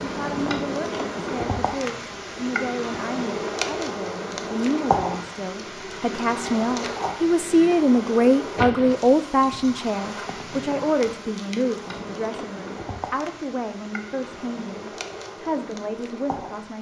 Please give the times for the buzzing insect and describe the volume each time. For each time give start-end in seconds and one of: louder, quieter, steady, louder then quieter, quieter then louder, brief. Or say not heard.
0.0-16.7 quieter.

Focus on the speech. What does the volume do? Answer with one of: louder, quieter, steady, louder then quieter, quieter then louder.
louder then quieter.